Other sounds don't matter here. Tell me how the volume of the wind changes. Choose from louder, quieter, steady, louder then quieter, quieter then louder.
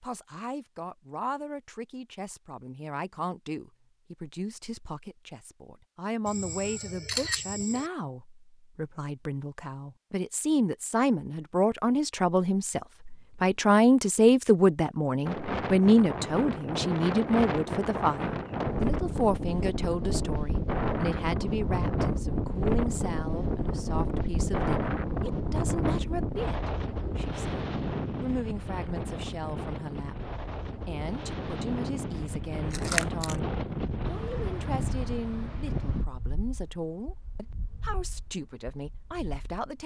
quieter.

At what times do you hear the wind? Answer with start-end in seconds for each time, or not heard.
15.2-39.8.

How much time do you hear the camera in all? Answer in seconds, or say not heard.
2 s.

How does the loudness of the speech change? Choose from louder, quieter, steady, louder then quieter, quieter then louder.
louder then quieter.